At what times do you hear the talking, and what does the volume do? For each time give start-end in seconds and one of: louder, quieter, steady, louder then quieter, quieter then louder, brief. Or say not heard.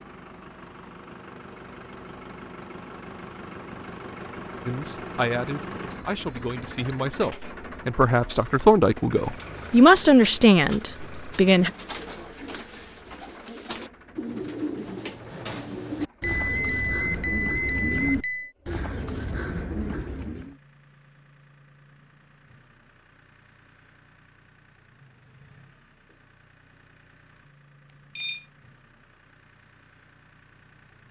4.7-11.7 louder.